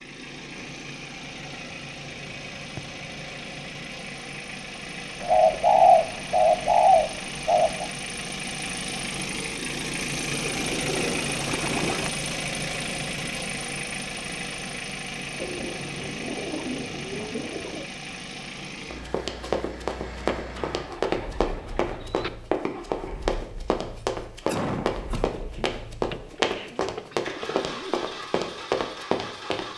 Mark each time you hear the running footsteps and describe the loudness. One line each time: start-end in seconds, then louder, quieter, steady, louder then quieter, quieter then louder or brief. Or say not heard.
18.9-29.7 steady.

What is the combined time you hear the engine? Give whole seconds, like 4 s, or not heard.
30 s.